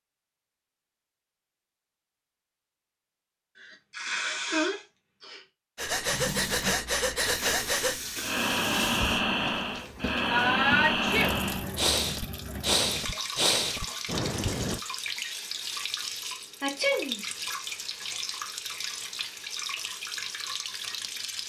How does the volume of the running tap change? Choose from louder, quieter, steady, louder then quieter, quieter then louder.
steady.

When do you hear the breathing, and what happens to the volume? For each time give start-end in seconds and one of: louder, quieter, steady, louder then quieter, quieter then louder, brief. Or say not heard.
5.8-14.8 steady.